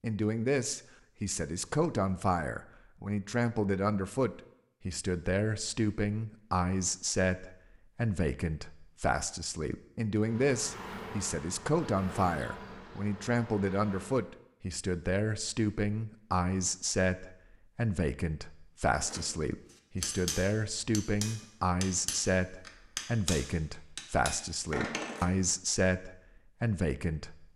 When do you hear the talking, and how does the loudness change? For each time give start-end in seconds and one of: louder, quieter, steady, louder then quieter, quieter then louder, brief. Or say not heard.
0.0-27.4 steady.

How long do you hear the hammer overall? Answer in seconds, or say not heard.
6 s.